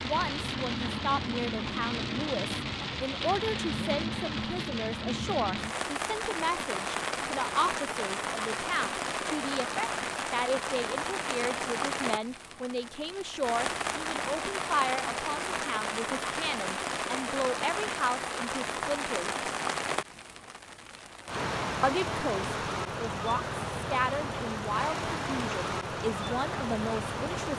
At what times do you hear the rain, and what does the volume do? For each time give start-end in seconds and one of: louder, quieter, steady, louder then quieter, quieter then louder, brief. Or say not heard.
0.0-27.5 steady.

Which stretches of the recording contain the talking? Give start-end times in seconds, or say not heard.
0.0-19.4, 21.8-27.5.